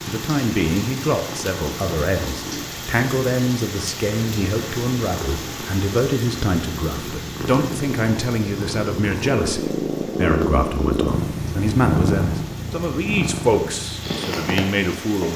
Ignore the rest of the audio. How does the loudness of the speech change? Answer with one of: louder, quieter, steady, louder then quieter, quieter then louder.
steady.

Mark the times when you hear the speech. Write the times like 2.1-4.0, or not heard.
0.1-15.3.